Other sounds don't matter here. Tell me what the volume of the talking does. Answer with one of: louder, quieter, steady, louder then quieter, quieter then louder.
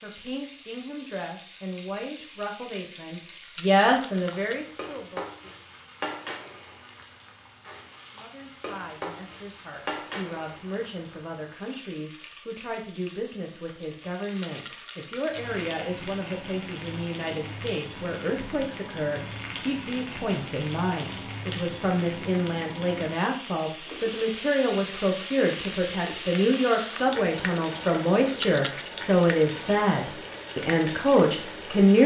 quieter then louder.